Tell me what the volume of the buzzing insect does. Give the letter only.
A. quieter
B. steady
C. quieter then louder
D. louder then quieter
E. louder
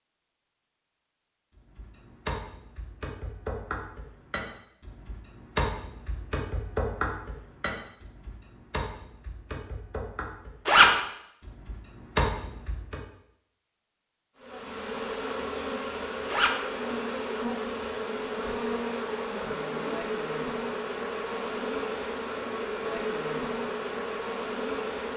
B.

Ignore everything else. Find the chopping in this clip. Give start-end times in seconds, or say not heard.
1.6-13.0.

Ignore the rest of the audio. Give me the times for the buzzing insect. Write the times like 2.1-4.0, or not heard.
14.3-25.1.